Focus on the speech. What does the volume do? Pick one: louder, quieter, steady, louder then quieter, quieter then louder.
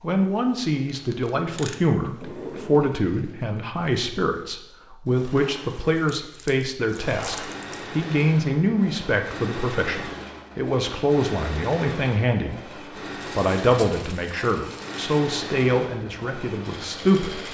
steady.